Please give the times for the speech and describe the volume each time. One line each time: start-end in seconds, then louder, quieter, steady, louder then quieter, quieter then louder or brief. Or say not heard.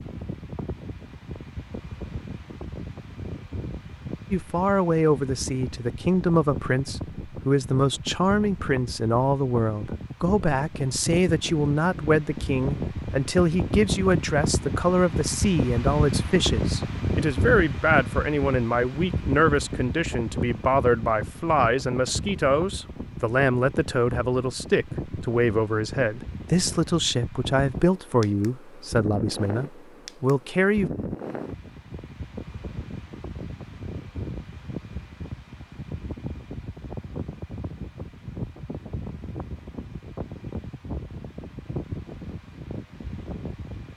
4.3-30.9 steady.